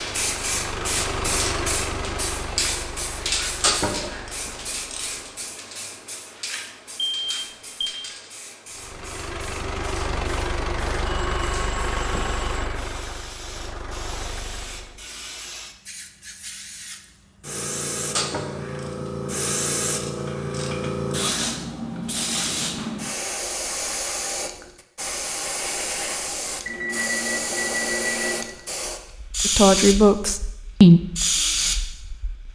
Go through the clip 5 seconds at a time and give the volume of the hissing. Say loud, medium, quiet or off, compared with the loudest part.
loud, medium, quiet, loud, loud, loud, loud.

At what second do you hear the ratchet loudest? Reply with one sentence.
The volume of the ratchet peaks at 4 seconds.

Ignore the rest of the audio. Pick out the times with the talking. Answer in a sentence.
The talking can be heard from 29.4 to 31.0 s.